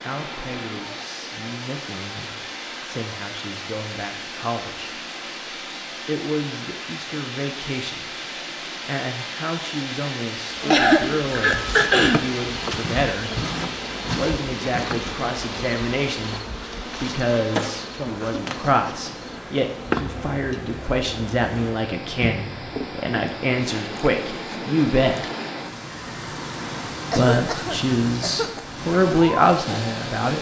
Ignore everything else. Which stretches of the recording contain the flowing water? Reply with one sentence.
The flowing water can be heard from 0.0 to 30.3 s.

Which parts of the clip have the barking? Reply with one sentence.
The barking can't be heard in this clip.